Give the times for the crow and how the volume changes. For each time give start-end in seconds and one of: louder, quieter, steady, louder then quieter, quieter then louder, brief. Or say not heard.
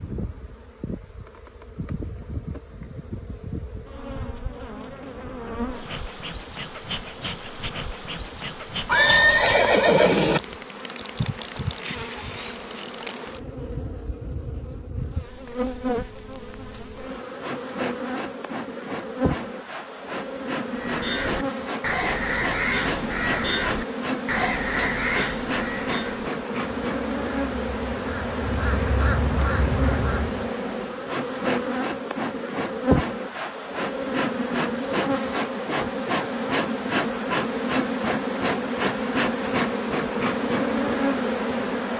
20.8-30.5 quieter then louder.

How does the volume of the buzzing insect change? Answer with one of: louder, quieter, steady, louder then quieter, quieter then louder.
louder.